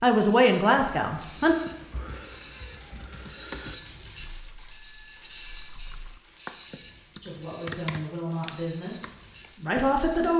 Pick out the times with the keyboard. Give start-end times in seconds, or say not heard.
0.8-9.5.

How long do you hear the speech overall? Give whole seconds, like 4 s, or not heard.
4 s.